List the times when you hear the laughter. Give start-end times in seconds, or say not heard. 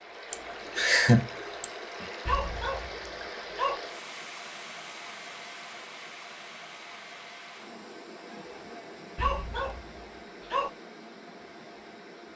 0.3-1.6.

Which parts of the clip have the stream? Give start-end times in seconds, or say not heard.
0.0-12.3.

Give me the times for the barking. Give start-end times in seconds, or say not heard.
2.2-3.8, 9.2-10.7.